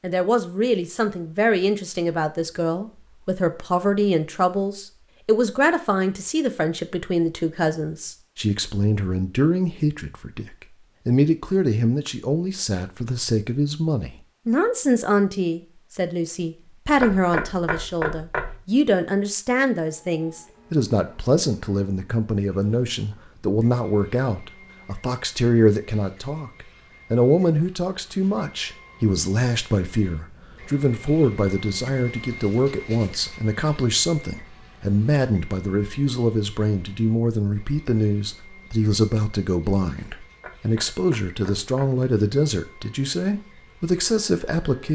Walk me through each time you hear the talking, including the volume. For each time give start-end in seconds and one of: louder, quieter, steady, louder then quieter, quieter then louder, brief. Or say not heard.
0.0-44.9 steady.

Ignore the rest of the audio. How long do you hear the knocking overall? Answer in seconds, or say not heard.
3 s.